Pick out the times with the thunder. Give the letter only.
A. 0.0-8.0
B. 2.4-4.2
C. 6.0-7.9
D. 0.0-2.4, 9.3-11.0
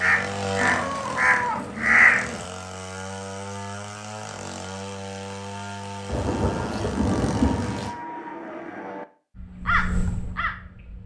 C.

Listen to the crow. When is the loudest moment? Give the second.
2 s.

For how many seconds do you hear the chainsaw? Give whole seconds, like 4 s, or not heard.
8 s.